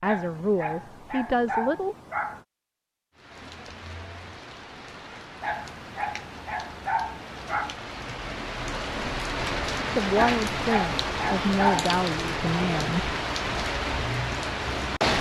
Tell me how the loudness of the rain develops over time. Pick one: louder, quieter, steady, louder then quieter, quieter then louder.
louder.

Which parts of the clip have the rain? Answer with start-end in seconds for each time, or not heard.
3.1-15.1.